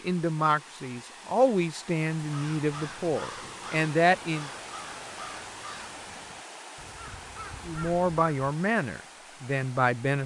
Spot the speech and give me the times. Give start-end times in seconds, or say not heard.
0.0-4.5, 7.7-10.2.